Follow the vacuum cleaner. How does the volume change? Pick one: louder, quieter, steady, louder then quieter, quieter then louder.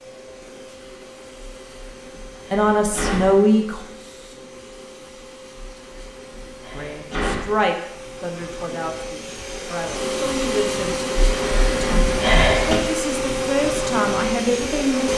louder.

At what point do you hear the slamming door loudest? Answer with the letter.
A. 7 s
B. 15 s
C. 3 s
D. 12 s
D.